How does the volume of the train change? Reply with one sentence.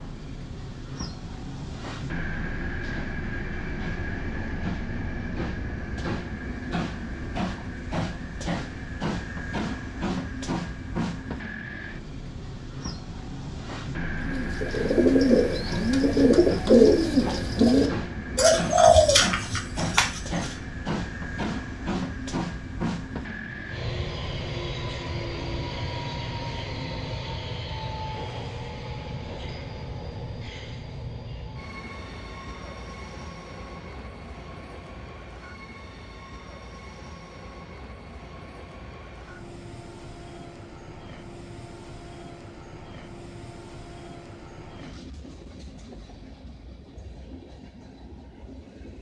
The volume of the train goes down.